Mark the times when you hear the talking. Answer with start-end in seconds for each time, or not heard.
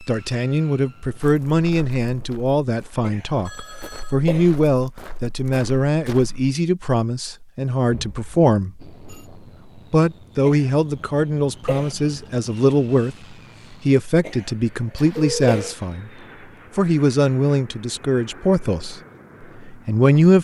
0.0-8.9, 9.9-16.1, 16.8-20.3.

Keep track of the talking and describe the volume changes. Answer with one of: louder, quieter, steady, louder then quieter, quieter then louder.
steady.